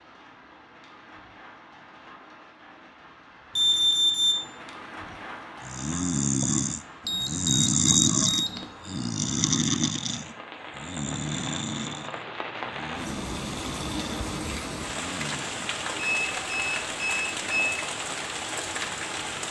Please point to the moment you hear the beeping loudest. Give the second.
4 s.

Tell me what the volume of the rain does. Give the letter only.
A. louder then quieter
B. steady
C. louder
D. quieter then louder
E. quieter
C.